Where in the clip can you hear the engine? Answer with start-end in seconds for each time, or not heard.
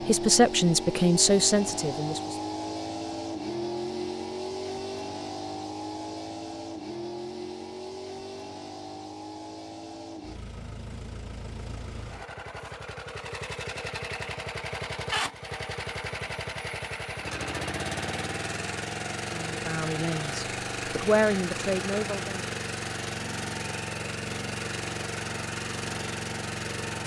0.0-27.0.